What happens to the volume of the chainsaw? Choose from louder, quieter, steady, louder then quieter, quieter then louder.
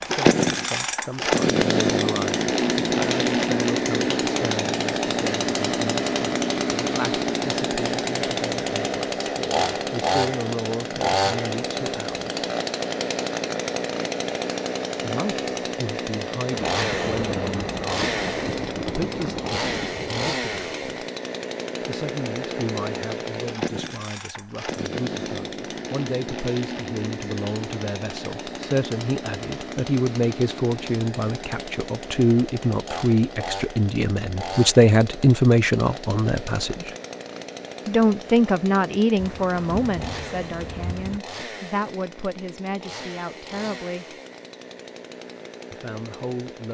quieter.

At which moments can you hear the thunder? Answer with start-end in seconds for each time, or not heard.
16.5-20.2, 39.1-41.2.